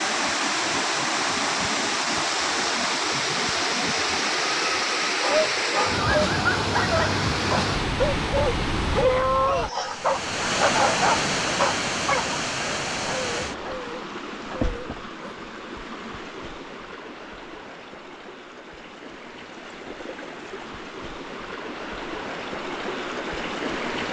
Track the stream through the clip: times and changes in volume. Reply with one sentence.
The stream can be heard from 0.0 to 24.0 s, getting quieter.